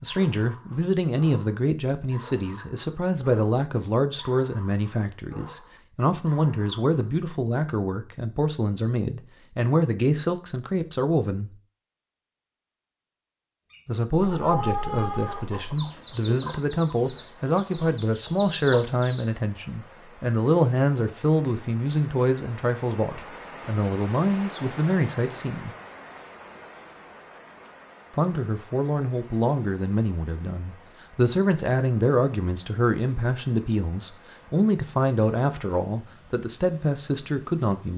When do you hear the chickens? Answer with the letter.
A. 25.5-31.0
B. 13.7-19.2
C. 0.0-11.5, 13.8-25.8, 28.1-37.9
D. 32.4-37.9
B.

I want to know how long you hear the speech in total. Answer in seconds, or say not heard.
33 s.